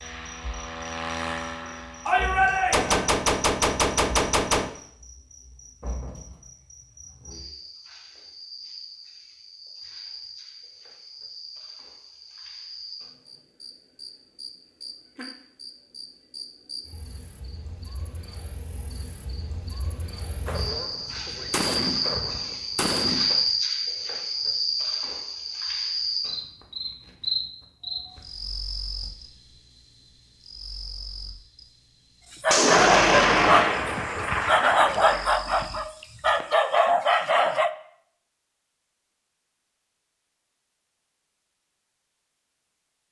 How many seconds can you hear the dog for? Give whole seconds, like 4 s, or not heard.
5 s.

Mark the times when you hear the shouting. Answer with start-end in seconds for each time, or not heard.
2.0-3.0.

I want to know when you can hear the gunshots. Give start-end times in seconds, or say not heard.
2.7-4.7, 20.4-23.4, 32.5-35.4.